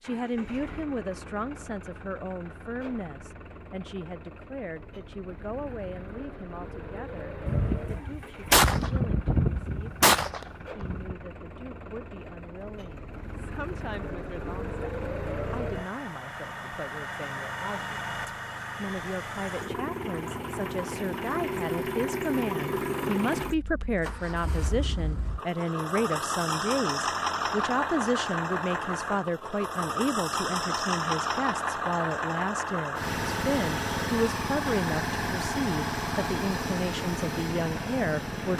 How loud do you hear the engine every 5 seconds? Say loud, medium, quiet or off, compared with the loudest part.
quiet, quiet, medium, medium, loud, loud, loud, loud.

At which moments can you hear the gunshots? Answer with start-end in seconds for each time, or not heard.
7.5-11.2.